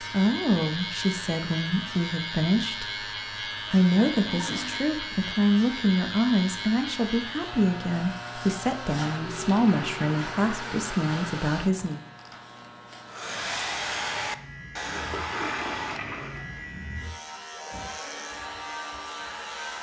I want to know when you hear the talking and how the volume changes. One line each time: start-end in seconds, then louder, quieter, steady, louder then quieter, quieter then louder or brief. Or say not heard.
0.0-12.0 steady.